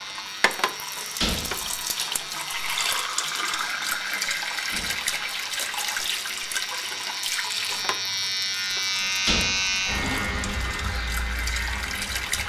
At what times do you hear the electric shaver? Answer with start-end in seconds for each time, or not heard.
0.0-12.4.